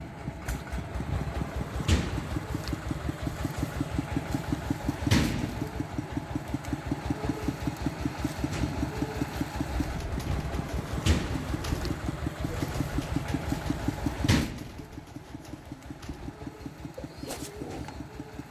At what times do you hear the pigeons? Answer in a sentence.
The pigeons can be heard from 9.7 to 18.0 s.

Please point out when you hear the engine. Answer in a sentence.
You can hear the engine from 0.0 to 18.4 s.